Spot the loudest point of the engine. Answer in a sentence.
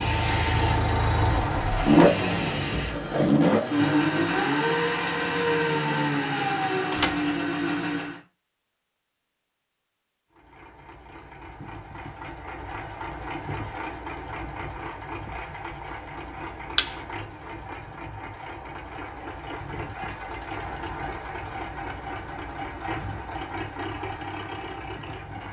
The loudest moment of the engine is at 2 seconds.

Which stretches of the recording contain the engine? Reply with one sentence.
You can hear the engine from 0.0 to 8.2 s and from 10.3 to 25.4 s.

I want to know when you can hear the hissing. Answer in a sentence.
The hissing can be heard from 0.0 to 3.0 s.